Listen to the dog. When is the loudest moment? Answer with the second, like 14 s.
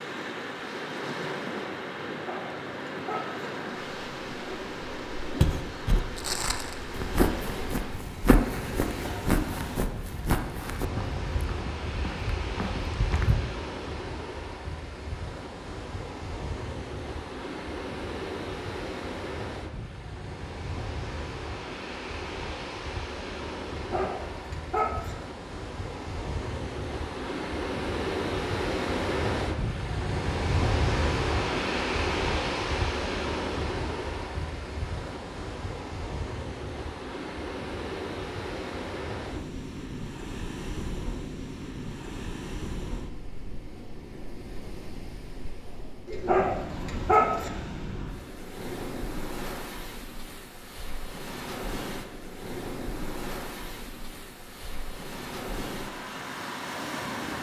47 s.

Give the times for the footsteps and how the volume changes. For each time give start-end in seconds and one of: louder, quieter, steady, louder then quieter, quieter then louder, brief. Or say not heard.
5.4-13.3 quieter.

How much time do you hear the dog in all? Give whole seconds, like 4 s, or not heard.
4 s.